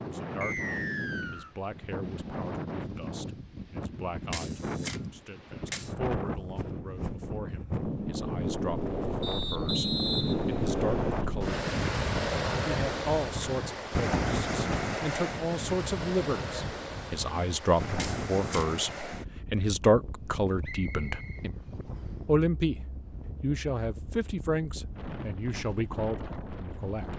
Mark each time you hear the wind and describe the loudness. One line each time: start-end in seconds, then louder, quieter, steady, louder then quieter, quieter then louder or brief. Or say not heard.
0.0-27.1 louder then quieter.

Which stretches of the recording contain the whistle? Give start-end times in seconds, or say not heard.
0.4-1.5, 9.2-11.2, 20.6-22.1.